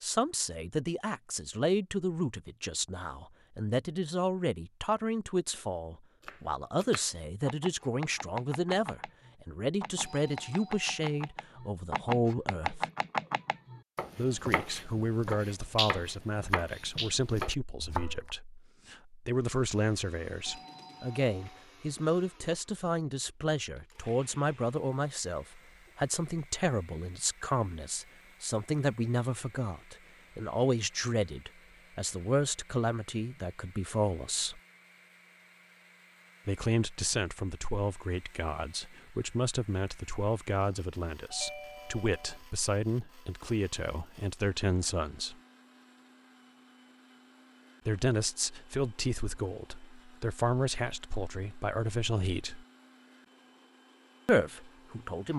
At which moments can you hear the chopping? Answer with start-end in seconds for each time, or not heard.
6.2-18.4.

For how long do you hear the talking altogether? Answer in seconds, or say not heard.
48 s.